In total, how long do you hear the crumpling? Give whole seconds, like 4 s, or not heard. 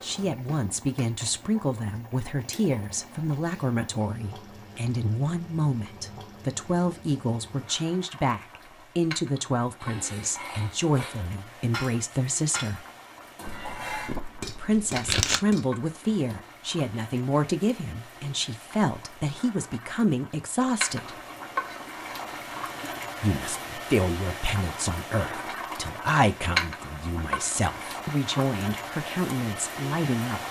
2 s.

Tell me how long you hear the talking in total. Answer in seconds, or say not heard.
27 s.